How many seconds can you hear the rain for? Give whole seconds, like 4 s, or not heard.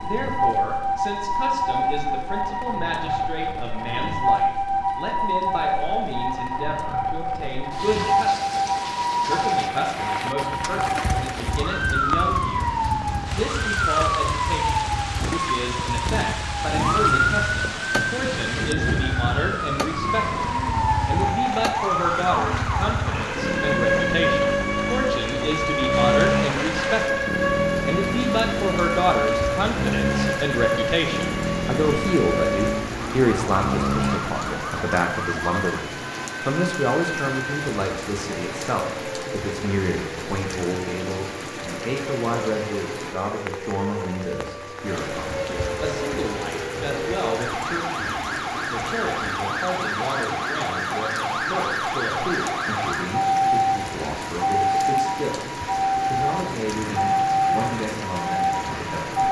59 s.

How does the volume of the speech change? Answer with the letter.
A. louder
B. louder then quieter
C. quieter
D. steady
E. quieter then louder
B.